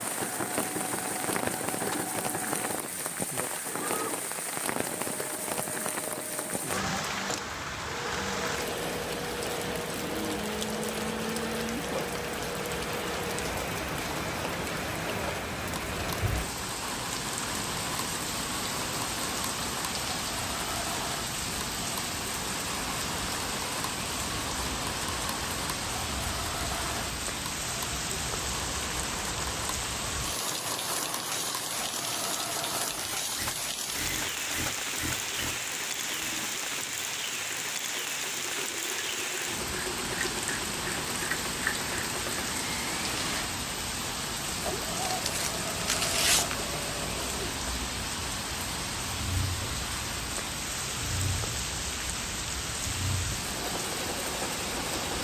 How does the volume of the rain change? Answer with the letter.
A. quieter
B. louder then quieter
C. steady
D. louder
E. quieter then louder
C.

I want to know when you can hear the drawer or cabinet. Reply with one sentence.
The drawer or cabinet can't be heard in this clip.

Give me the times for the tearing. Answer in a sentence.
The tearing can be heard from 45.0 to 46.6 s.